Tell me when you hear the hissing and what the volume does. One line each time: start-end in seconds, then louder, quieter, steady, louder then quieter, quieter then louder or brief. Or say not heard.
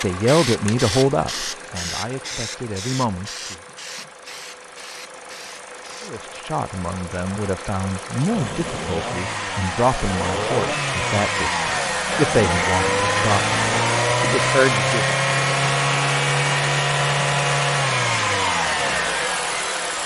0.0-6.2 quieter.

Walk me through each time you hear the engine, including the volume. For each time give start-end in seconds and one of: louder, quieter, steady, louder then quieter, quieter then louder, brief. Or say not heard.
0.0-20.0 louder.